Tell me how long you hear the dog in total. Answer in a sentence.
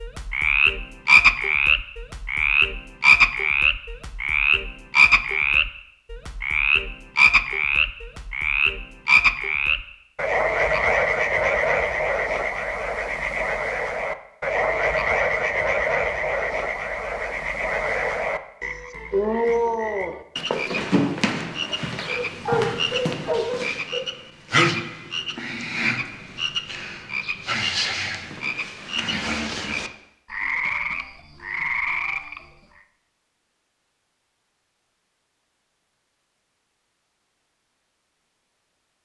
You can hear the dog for 2 seconds altogether.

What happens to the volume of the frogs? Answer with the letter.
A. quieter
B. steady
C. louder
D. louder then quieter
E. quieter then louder
A.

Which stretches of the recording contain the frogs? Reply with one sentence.
The frogs can be heard from 0.0 to 32.4 s.